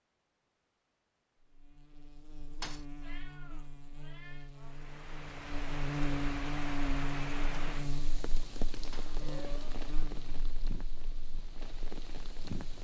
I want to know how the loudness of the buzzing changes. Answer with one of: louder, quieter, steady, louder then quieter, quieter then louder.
louder then quieter.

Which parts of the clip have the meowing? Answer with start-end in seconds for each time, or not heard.
3.0-4.5, 9.2-9.8.